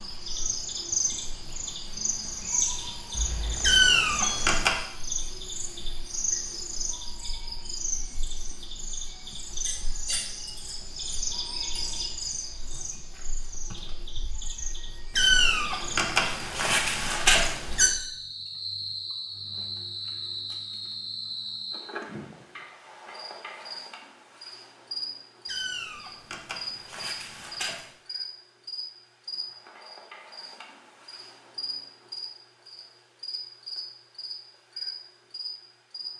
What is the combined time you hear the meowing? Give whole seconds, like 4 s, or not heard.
6 s.